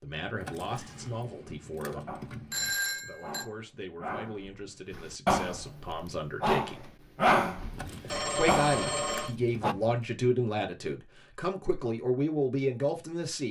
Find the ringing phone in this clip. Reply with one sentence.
You can hear the ringing phone from 2.5 to 3.5 s and from 8.1 to 9.3 s.